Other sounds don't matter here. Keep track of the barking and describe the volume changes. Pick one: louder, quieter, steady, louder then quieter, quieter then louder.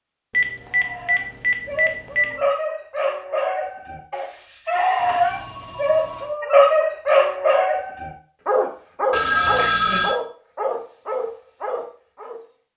louder then quieter.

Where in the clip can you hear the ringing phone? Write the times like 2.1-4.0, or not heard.
0.3-2.5, 5.0-6.3, 9.1-10.2.